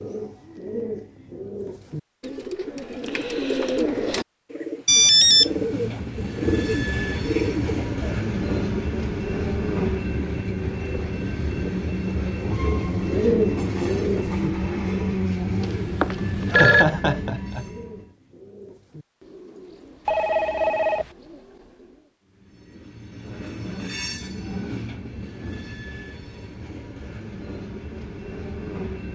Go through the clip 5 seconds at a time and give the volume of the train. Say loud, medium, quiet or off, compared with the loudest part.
off, loud, loud, loud, medium, medium.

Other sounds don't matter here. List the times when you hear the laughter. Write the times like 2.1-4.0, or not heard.
16.4-17.6.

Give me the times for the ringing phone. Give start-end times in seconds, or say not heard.
4.8-6.0, 15.6-16.9, 20.1-21.1.